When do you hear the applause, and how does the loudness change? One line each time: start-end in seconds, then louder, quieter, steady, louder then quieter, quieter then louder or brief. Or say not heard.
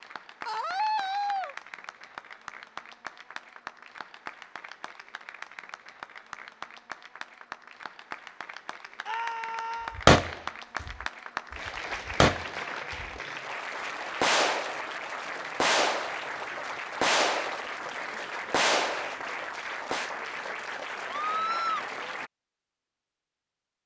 0.0-22.3 louder.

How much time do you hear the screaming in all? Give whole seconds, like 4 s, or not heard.
3 s.